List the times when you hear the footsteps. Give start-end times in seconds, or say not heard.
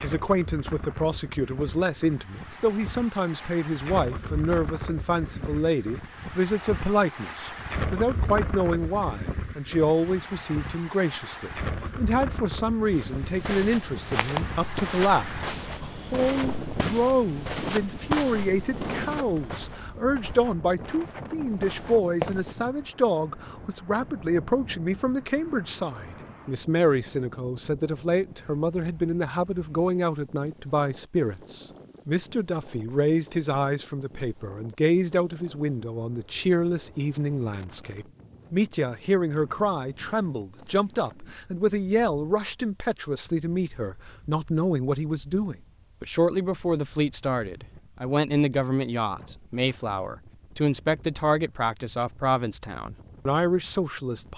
12.8-22.6.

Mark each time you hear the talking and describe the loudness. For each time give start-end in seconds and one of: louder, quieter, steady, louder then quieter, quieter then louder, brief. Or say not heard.
0.0-54.3 steady.